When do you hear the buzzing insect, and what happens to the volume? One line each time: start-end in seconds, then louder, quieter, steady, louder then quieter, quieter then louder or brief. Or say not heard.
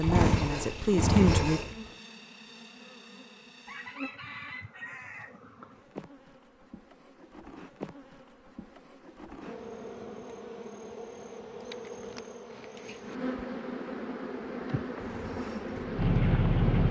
0.0-16.8 louder.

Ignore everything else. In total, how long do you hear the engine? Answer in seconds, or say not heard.
4 s.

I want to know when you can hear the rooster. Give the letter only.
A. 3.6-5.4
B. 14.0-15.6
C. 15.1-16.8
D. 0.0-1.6
A.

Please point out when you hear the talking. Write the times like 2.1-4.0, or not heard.
0.0-1.6.